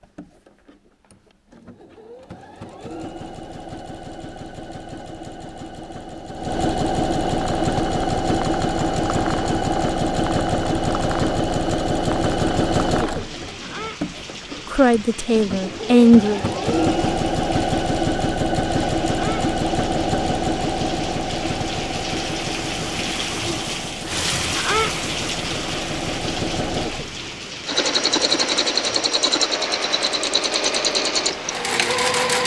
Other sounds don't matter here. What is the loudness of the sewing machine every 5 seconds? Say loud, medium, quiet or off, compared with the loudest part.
quiet, loud, loud, loud, medium, loud, loud.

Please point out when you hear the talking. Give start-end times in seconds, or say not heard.
14.7-16.4.